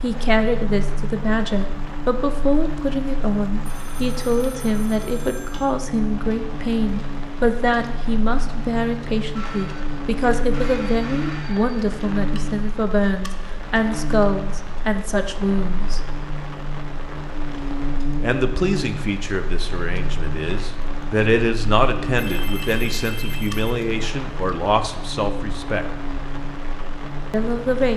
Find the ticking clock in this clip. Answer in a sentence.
The ticking clock can't be heard in this clip.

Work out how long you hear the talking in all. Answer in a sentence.
The talking can be heard for 24 seconds in total.